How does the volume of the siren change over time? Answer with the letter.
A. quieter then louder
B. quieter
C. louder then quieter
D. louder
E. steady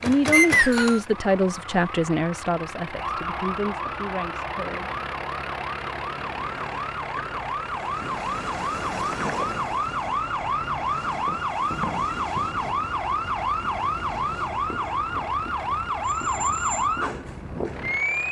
D.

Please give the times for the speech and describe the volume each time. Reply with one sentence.
The speech can be heard from 0.0 to 5.0 s, getting quieter.